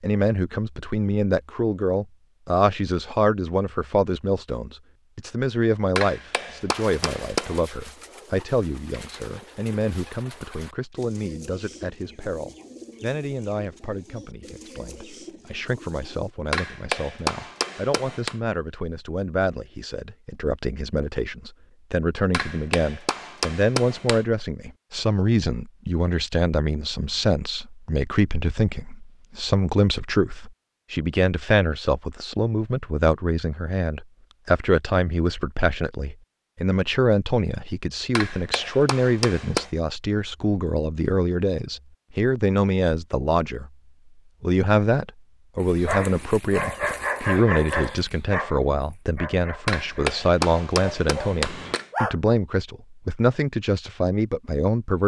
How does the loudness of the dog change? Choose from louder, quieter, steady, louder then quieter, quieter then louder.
quieter then louder.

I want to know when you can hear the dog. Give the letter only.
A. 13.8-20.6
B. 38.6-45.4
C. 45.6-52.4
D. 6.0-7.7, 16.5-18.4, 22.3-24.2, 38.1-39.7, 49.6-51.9
C.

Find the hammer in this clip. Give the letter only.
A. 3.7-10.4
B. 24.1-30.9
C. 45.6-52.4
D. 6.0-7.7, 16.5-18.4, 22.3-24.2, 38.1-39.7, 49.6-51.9
D.